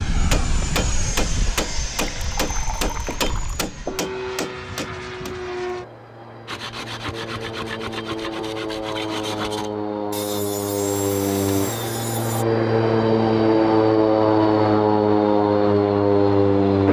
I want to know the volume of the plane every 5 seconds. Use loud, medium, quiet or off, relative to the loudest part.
quiet, quiet, loud, loud.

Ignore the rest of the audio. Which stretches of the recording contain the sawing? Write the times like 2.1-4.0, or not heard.
6.5-12.4.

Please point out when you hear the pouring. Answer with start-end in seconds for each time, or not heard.
2.1-3.8.